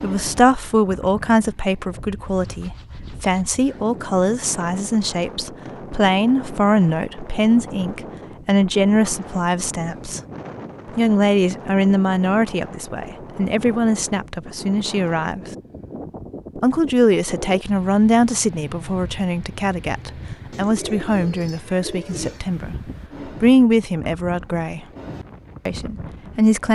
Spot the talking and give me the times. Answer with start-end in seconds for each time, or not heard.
0.0-10.2, 10.9-15.4, 16.6-24.9, 25.6-26.7.